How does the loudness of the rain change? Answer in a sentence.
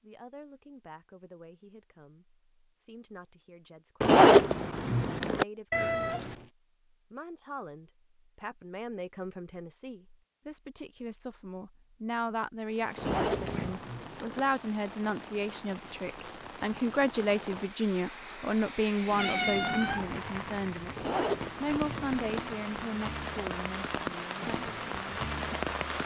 The loudness of the rain goes up.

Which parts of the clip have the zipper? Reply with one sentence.
You can hear the zipper from 4.0 to 5.5 s, from 12.9 to 14.4 s and from 20.9 to 22.4 s.